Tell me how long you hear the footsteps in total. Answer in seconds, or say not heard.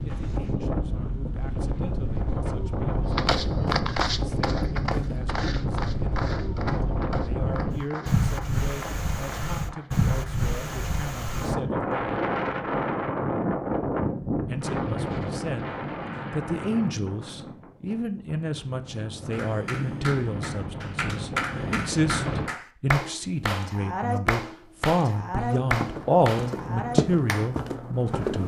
10 s.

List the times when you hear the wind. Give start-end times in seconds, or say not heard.
0.0-22.5.